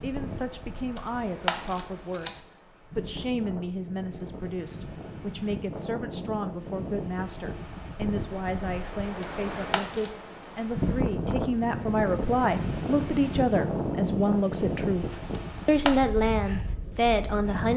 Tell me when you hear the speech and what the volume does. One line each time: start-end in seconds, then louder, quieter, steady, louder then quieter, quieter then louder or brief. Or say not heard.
0.0-17.7 louder.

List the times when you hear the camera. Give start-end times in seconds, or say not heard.
0.9-2.4, 9.2-10.1, 15.3-16.0.